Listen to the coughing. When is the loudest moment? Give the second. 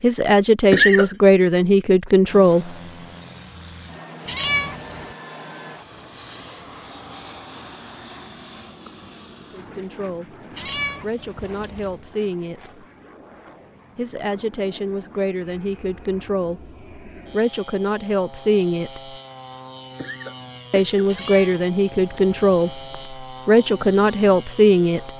1 s.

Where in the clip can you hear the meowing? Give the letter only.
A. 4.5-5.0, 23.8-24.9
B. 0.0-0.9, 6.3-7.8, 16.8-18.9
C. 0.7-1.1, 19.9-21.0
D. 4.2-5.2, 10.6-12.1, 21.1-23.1
D.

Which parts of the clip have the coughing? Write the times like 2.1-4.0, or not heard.
0.7-1.1, 19.9-21.0.